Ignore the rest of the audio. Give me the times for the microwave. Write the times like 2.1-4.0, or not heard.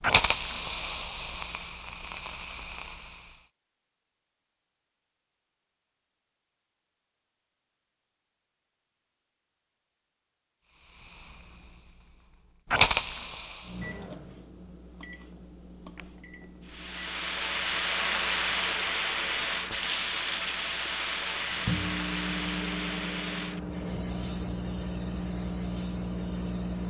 13.6-26.8.